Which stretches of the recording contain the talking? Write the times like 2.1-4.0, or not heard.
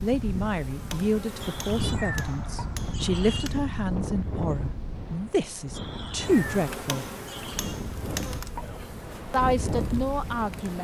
0.0-7.0, 9.3-10.7.